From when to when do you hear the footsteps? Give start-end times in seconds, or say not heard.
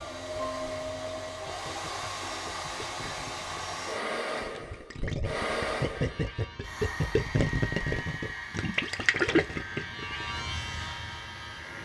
not heard.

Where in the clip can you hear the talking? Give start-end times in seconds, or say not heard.
not heard.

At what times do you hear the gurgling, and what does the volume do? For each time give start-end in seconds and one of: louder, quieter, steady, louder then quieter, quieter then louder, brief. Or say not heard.
0.5-10.3 louder.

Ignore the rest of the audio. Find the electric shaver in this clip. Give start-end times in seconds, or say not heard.
5.9-11.8.